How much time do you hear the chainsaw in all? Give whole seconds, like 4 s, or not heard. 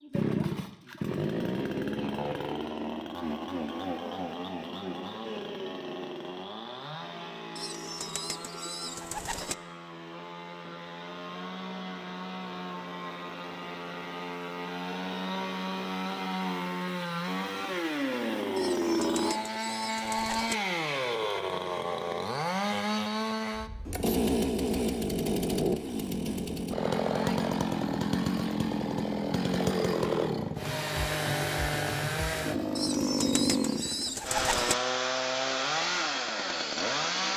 37 s.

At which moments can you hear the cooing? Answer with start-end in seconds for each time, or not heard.
7.5-9.6, 18.6-20.6, 32.8-34.8.